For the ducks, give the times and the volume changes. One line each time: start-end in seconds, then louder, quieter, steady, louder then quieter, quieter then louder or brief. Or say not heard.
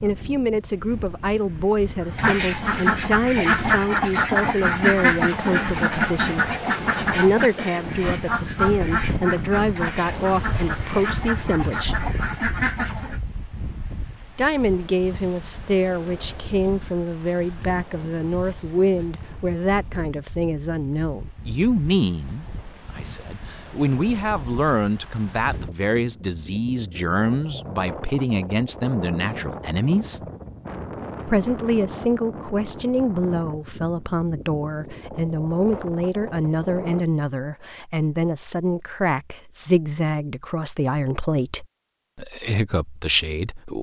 2.0-13.2 quieter.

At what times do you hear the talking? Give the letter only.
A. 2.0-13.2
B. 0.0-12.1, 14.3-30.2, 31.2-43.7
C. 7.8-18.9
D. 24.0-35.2
B.